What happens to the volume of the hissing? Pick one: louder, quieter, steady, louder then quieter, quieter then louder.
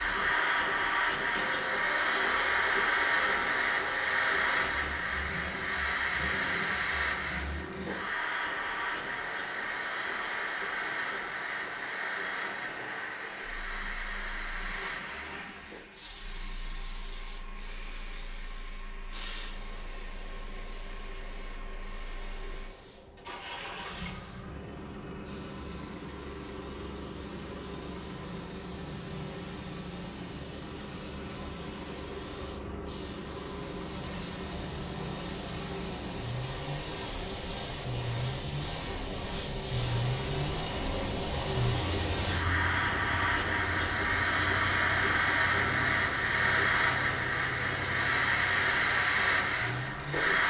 quieter then louder.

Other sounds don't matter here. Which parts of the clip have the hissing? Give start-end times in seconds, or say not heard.
0.0-50.4.